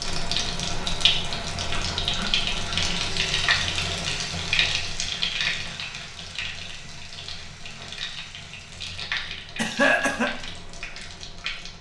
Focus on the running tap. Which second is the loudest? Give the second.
3 s.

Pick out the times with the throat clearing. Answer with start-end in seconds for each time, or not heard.
9.6-10.3.